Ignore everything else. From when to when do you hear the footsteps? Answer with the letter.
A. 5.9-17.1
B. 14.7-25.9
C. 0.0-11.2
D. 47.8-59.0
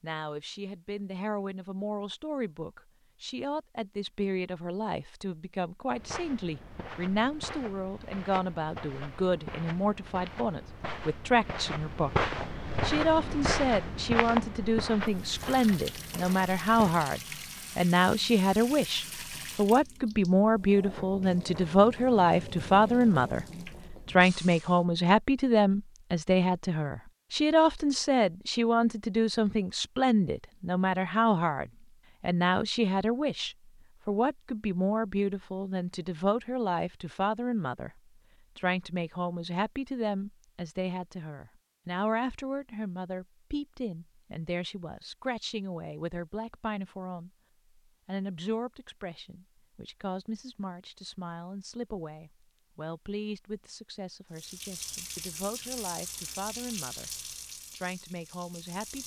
A.